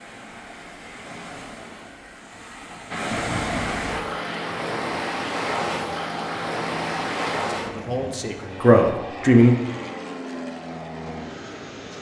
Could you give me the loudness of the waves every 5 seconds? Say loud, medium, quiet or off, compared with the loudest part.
loud, loud, off.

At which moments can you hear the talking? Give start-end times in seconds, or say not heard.
7.7-9.6.